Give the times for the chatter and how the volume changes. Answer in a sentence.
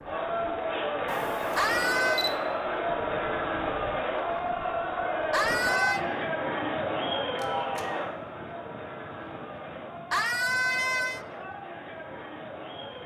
You can hear the chatter from 0.0 to 13.0 s, getting quieter.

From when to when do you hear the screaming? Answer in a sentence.
The screaming can be heard from 1.6 to 2.3 s, from 5.3 to 6.0 s and from 10.1 to 11.2 s.